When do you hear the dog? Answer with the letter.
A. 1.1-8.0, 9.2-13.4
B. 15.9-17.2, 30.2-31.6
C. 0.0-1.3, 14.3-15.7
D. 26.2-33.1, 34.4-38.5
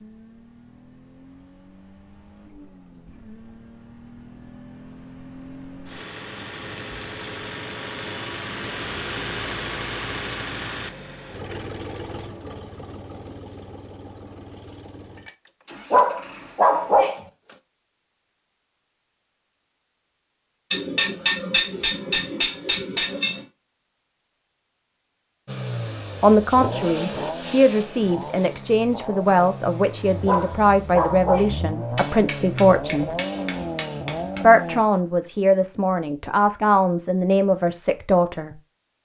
B.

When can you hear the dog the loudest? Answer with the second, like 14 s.
17 s.